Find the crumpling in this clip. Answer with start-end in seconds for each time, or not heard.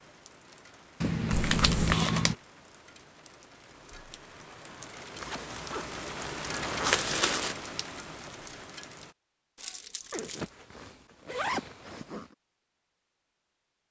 1.0-2.4, 6.8-7.5, 9.6-10.5.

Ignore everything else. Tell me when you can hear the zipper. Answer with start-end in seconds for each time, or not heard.
1.3-2.0, 5.2-7.5, 10.1-12.3.